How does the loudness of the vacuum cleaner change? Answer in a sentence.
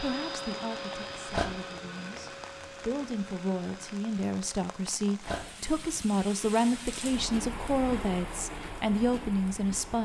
The loudness of the vacuum cleaner goes down.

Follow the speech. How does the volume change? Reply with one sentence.
The volume of the speech goes up.